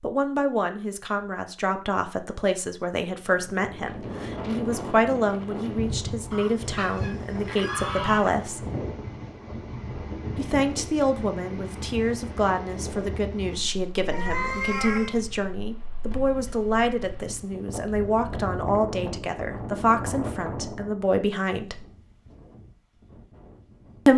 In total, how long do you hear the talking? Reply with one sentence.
You can hear the talking for 20 seconds altogether.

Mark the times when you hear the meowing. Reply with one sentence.
The meowing can be heard from 14.1 to 15.2 s.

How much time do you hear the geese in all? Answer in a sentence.
You can hear the geese for 2 seconds altogether.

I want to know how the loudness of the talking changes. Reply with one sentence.
The volume of the talking stays about the same.